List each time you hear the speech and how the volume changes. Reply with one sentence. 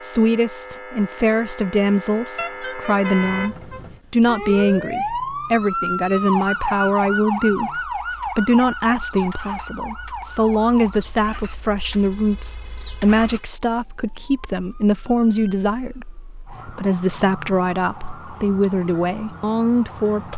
You can hear the speech from 0.0 to 20.3 s, at a steady volume.